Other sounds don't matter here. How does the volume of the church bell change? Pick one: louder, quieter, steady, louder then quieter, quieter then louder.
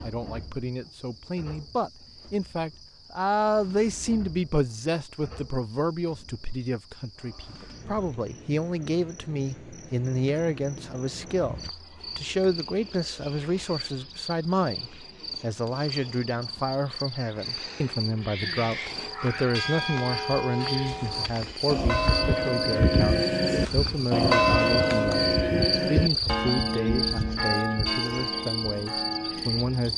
louder then quieter.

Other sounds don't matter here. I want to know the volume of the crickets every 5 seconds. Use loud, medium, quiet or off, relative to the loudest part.
quiet, quiet, medium, medium, loud, loud.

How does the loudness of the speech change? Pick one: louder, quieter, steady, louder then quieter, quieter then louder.
steady.